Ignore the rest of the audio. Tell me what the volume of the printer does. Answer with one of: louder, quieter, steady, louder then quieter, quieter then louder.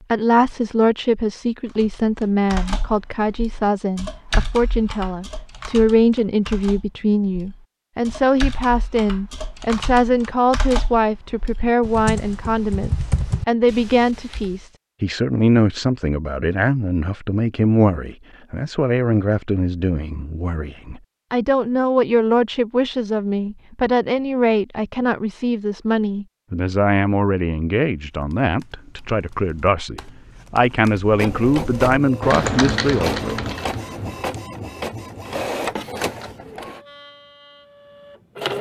quieter.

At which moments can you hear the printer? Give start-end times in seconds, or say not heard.
31.1-38.5.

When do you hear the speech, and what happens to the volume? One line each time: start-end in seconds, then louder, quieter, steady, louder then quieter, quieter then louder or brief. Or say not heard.
0.1-33.4 steady.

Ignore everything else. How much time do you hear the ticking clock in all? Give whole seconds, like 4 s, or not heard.
not heard.